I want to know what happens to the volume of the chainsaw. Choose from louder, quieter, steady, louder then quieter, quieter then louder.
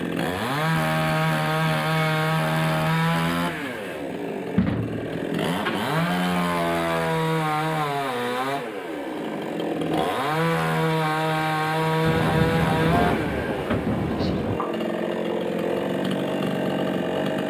steady.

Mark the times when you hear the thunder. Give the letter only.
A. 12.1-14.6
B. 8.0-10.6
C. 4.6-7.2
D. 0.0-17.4
A.